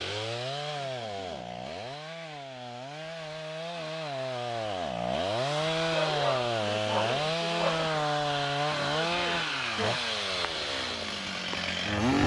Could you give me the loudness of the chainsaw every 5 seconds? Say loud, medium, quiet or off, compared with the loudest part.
medium, loud, loud.